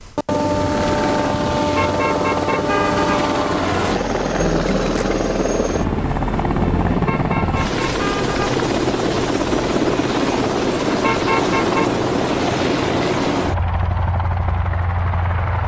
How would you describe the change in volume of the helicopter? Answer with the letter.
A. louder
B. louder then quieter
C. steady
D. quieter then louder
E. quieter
C.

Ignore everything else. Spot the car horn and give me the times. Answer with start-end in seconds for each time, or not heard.
1.8-3.2, 7.0-8.4, 11.0-11.9.